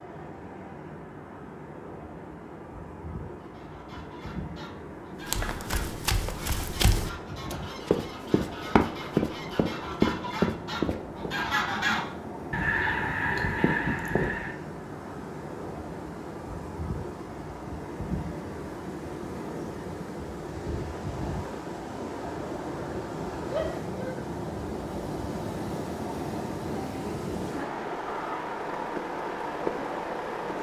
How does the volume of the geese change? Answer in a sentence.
The volume of the geese goes up.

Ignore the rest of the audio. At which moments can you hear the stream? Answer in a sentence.
The stream can be heard from 0.0 to 30.5 s.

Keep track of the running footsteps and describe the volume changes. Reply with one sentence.
The loudness of the running footsteps goes up.